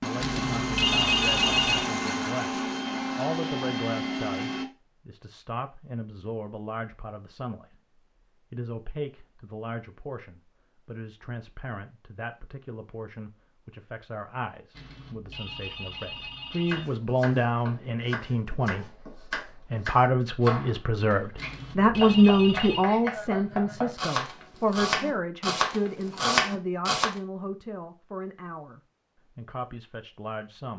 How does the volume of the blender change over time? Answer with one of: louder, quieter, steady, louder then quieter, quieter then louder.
steady.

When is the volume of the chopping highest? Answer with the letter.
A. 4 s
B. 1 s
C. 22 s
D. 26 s
D.